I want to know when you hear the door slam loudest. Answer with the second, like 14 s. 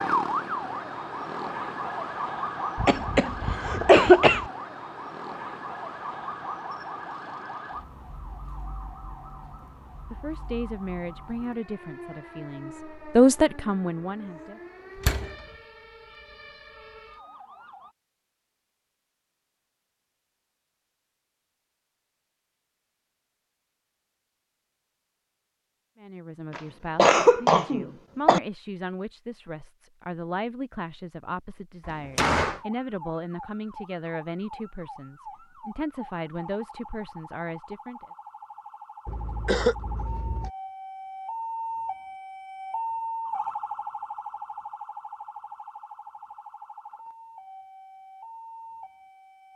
32 s.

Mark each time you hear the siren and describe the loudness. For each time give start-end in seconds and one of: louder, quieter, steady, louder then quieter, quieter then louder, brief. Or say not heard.
0.0-17.9 quieter
32.5-49.5 louder then quieter.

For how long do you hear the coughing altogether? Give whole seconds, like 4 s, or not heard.
5 s.